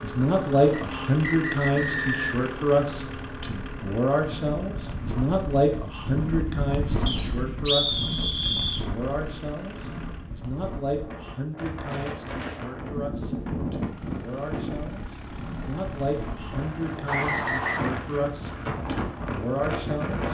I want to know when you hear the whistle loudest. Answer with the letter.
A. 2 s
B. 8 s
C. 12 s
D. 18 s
B.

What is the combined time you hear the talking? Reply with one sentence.
The talking can be heard for 20 seconds in total.